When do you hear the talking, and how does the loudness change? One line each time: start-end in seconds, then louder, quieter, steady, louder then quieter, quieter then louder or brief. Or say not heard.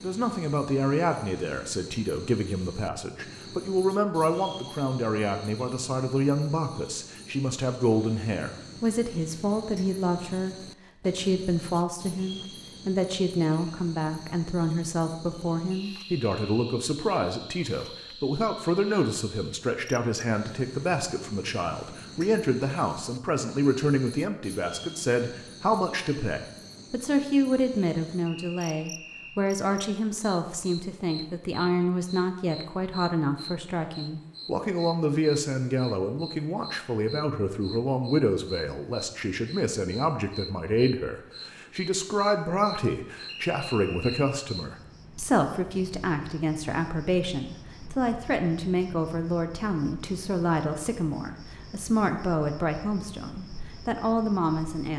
0.0-54.9 steady.